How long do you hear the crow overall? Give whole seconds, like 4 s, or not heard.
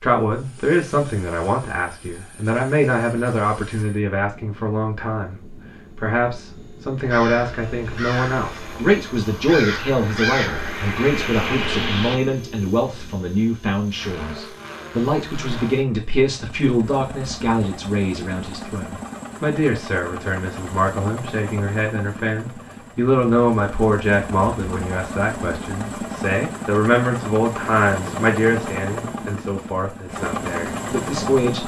5 s.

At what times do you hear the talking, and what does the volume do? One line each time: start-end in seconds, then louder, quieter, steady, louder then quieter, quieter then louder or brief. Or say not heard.
0.0-31.6 steady.